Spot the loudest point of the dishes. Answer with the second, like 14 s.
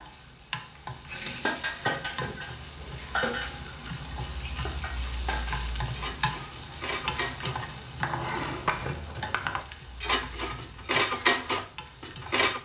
11 s.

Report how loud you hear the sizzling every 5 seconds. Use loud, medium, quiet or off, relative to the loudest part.
loud, loud, medium.